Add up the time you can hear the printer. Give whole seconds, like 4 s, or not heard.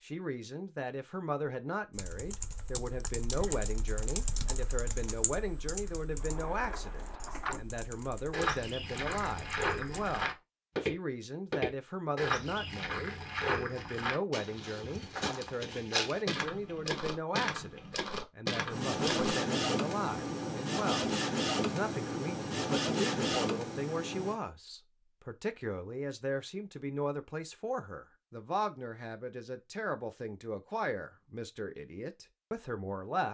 6 s.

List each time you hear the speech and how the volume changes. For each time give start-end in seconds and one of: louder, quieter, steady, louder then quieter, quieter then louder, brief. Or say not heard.
0.0-33.2 steady.